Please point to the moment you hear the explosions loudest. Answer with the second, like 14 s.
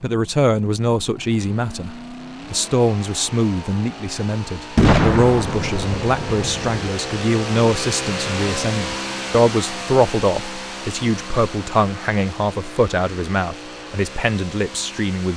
5 s.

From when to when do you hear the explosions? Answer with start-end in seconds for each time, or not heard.
4.8-6.9.